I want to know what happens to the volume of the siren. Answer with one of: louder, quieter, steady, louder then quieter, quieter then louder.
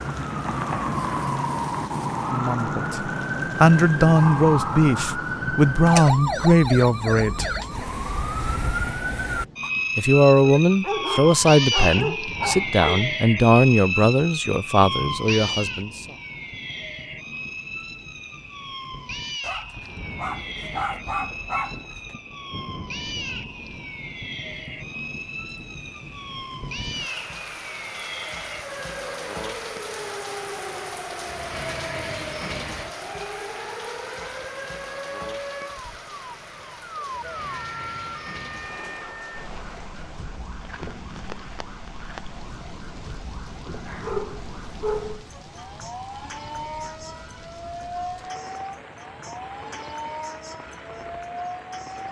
quieter.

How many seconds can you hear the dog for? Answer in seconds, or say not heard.
7 s.